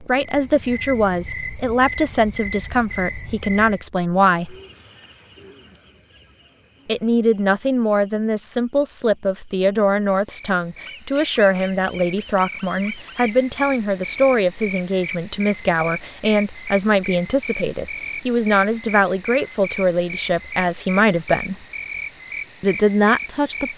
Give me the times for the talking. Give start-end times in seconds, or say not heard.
0.0-4.5, 6.8-21.6, 22.6-23.7.